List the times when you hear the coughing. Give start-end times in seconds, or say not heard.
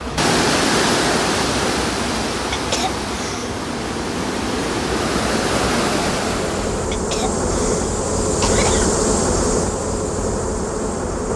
2.5-3.5, 6.9-8.9.